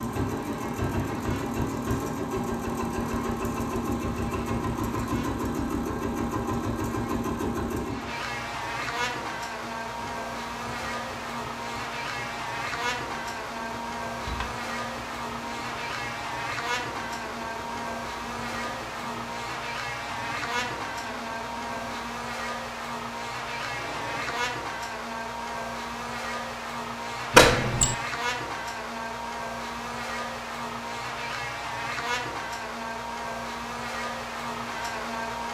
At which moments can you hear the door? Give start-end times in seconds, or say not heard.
14.2-14.6, 27.3-27.9.